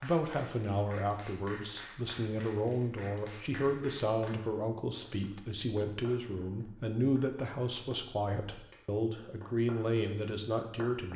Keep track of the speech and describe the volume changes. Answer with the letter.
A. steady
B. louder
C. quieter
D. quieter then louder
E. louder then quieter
A.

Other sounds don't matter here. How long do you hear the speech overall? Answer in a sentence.
The speech can be heard for 11 seconds in total.